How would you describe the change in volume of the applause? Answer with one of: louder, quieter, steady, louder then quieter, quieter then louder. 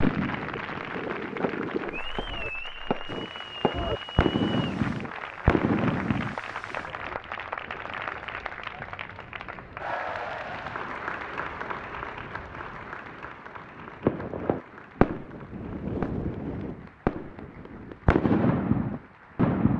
quieter.